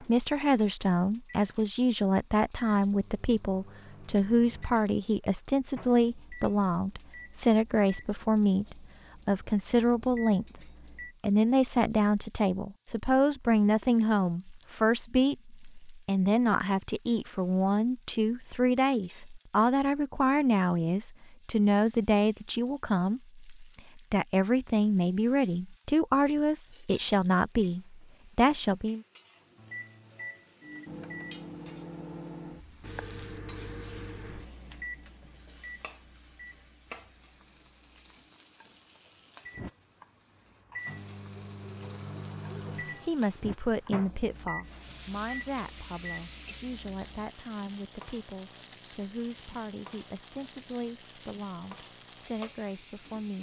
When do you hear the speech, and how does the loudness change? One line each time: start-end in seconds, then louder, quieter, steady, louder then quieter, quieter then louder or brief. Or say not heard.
0.0-29.0 steady
42.5-53.3 quieter.